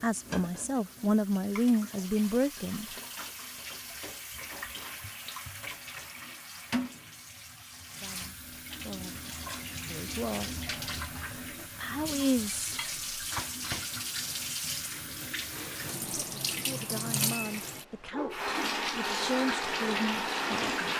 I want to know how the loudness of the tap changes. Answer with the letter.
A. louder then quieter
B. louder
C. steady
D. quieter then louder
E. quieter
B.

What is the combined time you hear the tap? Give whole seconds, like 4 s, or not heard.
21 s.